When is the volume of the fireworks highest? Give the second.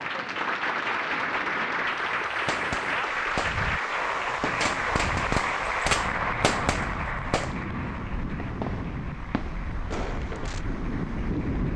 6 s.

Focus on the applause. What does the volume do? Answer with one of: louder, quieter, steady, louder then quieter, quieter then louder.
quieter.